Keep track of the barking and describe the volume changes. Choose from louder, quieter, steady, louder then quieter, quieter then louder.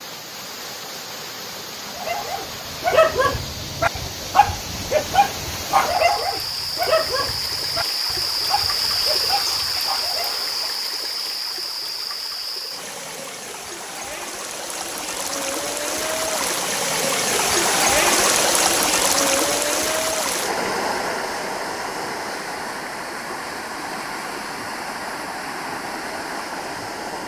quieter.